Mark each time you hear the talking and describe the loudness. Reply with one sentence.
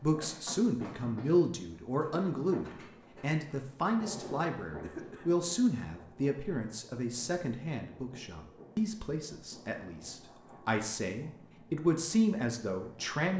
The talking can be heard from 0.0 to 13.3 s, getting quieter then louder.